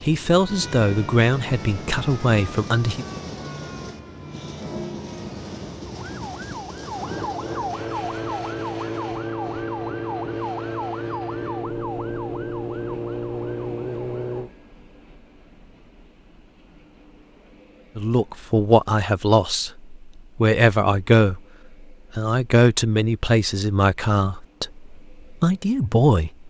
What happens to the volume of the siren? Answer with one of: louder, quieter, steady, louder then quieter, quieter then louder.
louder.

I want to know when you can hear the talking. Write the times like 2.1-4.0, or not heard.
0.0-3.0, 17.9-21.4, 22.1-26.4.